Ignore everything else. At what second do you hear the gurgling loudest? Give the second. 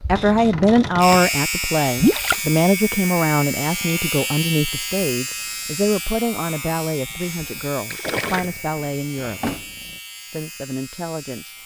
2 s.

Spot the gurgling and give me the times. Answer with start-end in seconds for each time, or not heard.
1.9-2.4, 7.9-8.5.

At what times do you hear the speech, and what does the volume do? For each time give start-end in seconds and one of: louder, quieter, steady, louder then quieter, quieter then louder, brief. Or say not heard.
0.1-9.4 quieter
10.3-11.6 brief.